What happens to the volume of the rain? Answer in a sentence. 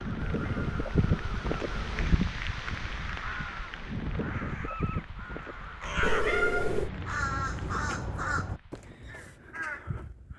The loudness of the rain goes down.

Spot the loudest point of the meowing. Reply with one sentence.
The volume of the meowing peaks at 6 seconds.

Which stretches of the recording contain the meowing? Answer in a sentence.
The meowing can be heard from 0.3 to 2.1 s and from 6.0 to 6.9 s.